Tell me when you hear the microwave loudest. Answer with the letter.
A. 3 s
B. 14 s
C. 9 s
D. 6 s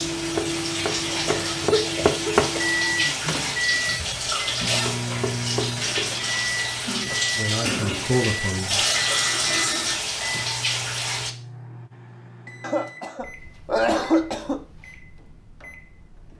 A.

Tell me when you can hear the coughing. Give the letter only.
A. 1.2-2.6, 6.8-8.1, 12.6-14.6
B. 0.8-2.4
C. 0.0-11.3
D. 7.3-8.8
A.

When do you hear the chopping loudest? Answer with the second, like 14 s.
2 s.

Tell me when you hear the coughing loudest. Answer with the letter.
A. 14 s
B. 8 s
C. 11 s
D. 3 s
A.